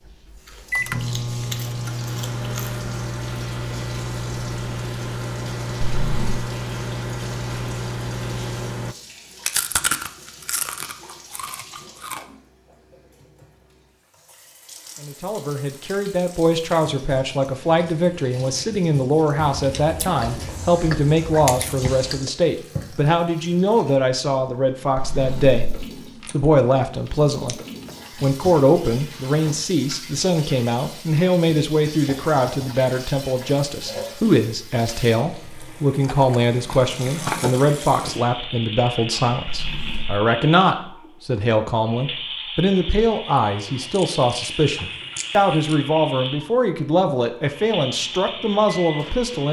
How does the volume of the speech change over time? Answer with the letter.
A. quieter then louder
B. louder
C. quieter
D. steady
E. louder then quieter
D.